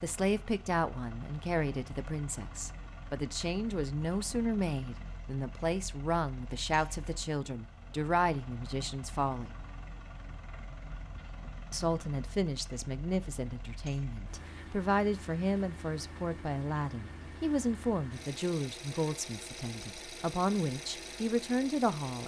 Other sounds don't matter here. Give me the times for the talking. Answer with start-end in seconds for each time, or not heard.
0.0-9.6, 11.7-22.2.